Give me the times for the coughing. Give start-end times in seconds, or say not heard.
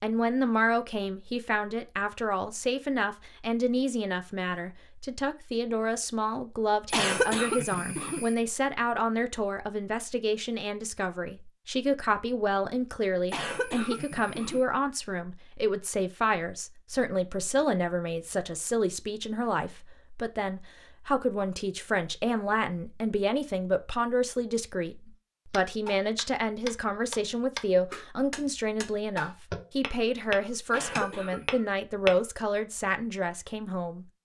6.9-8.3, 13.2-14.7, 30.7-31.5.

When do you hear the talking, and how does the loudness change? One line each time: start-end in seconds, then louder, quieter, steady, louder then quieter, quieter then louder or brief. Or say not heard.
0.0-34.0 steady.